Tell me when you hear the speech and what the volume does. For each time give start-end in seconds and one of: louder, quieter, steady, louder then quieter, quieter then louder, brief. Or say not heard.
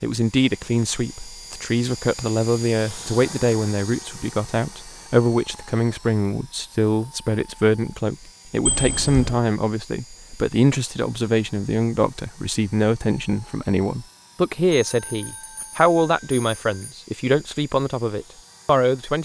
0.0-19.1 steady.